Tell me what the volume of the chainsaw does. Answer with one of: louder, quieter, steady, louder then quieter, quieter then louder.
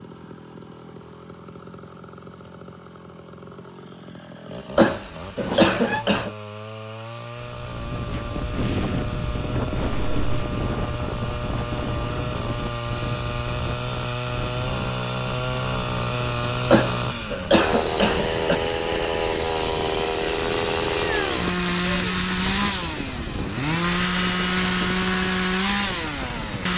louder.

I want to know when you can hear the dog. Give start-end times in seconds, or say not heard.
not heard.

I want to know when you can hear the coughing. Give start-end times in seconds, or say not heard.
4.8-6.3, 16.7-18.6.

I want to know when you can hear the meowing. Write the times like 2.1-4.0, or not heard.
5.3-6.0, 9.8-10.4, 21.1-22.1.